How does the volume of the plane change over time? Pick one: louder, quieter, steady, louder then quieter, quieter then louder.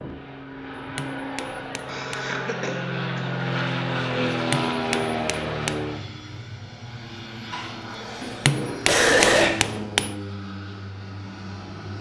louder then quieter.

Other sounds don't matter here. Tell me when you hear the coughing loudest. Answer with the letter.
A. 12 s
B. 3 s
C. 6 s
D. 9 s
D.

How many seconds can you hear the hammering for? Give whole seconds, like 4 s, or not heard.
5 s.